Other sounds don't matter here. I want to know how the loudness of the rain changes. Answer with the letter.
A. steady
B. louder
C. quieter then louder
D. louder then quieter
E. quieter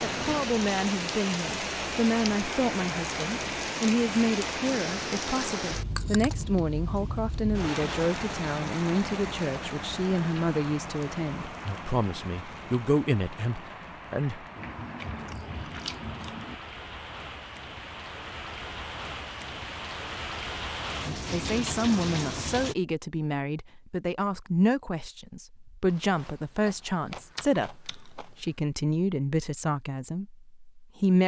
C.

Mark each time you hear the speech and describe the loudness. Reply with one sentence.
The speech can be heard from 0.0 to 14.4 s, at a steady volume; and from 21.1 to 31.2 s, at a steady volume.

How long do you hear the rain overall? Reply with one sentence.
You can hear the rain for 23 seconds altogether.